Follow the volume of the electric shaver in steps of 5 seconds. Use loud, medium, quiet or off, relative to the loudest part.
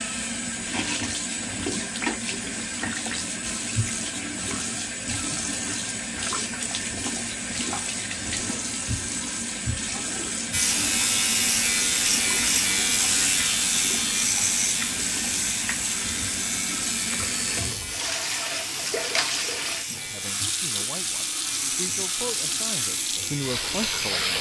off, off, loud, medium, medium.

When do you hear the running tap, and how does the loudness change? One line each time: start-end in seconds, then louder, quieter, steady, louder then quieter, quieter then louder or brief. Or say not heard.
0.0-24.3 steady.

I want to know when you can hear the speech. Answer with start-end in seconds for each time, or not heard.
19.9-24.3.